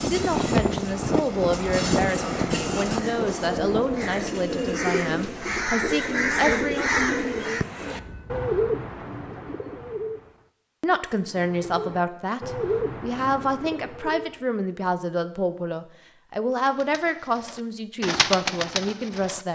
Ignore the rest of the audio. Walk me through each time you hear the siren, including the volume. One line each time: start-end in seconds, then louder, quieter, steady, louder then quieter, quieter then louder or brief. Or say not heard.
not heard.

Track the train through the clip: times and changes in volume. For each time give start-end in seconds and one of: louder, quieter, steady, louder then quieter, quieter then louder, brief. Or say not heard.
0.0-8.5 quieter.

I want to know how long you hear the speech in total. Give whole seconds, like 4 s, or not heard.
16 s.